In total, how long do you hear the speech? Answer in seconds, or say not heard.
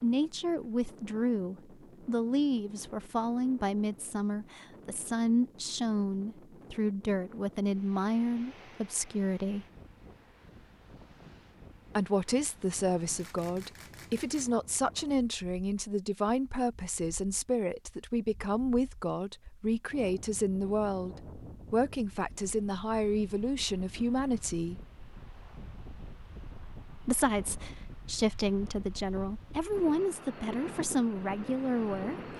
28 s.